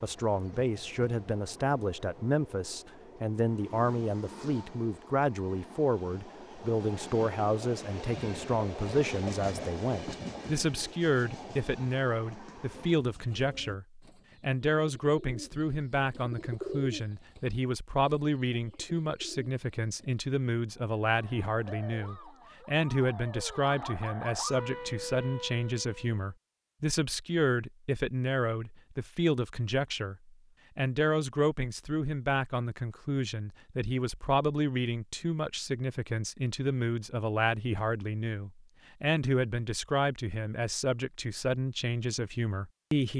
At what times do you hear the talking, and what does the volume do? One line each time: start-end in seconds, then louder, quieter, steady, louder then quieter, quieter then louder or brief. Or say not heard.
0.0-43.1 steady.